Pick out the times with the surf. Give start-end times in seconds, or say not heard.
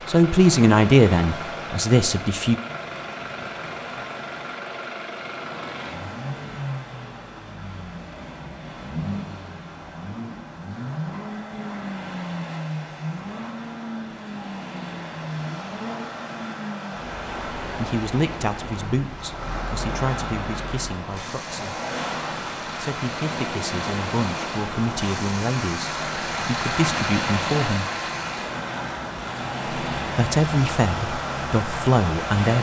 0.0-32.5.